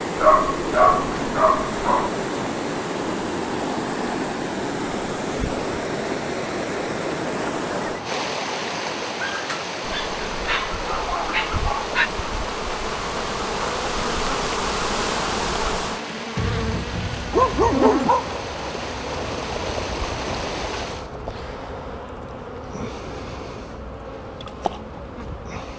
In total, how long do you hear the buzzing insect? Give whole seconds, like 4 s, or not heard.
16 s.